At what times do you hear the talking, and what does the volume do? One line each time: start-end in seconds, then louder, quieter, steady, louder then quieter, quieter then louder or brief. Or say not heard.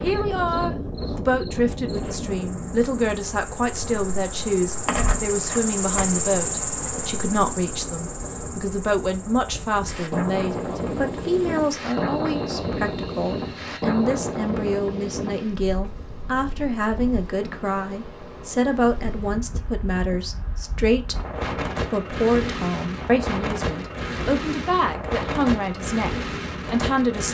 0.0-27.2 steady.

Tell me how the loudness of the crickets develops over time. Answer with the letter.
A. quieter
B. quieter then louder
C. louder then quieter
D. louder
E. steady
C.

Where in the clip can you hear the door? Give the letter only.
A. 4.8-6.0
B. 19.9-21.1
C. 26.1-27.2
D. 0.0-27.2
A.